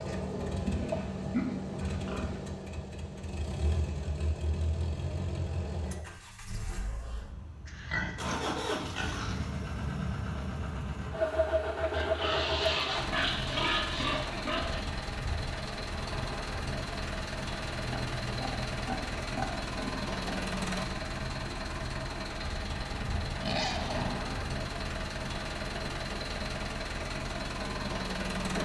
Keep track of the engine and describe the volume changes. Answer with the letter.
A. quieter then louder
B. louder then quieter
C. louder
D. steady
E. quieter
D.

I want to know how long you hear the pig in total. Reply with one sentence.
You can hear the pig for 11 seconds altogether.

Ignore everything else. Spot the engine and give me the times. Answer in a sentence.
You can hear the engine from 0.0 to 28.6 s.